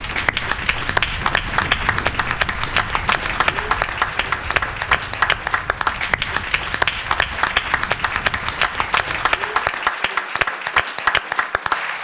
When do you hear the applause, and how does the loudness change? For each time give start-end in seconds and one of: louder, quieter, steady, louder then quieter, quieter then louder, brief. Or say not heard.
0.0-11.9 steady.